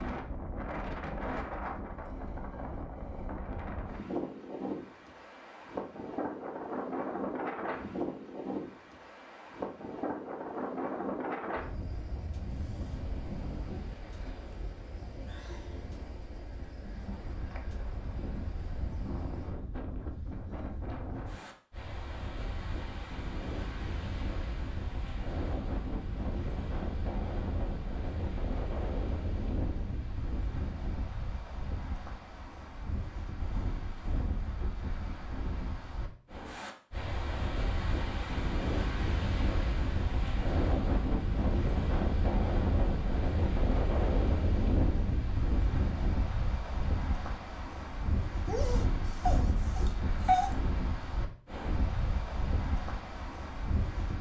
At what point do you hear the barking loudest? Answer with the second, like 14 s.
50 s.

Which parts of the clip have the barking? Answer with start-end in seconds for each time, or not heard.
48.5-50.5.